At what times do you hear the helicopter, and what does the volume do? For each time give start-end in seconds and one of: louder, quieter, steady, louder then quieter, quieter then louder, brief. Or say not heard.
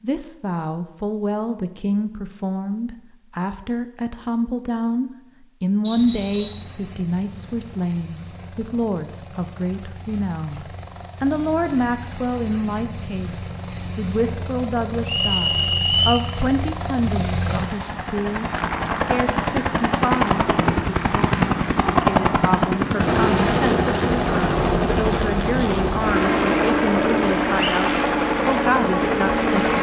6.0-29.7 louder.